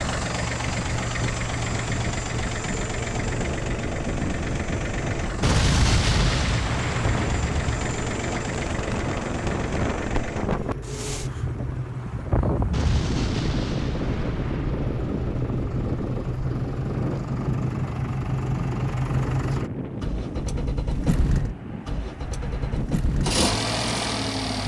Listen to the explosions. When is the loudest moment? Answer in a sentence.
The loudest moment of the explosions is at 6 seconds.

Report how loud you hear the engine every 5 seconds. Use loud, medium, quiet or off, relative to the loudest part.
loud, loud, medium, loud, loud.